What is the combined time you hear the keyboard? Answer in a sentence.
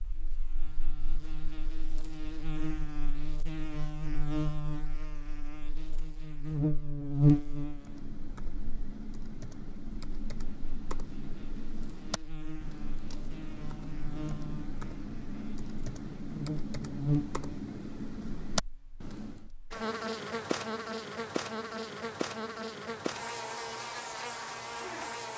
The keyboard can be heard for 12 seconds in total.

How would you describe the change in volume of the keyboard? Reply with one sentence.
The volume of the keyboard goes up.